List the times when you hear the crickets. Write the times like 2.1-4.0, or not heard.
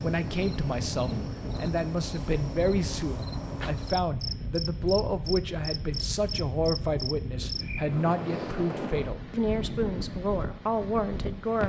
0.0-8.0.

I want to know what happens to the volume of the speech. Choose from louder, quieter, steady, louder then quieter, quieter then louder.
steady.